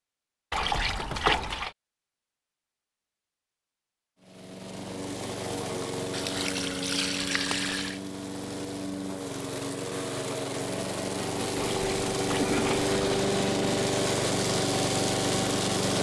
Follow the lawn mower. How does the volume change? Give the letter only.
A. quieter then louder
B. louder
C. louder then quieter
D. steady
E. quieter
B.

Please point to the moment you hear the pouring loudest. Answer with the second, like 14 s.
1 s.